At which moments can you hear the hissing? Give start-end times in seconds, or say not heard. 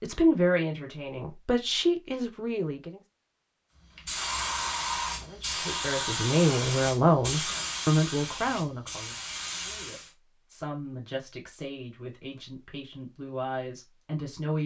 4.0-10.1.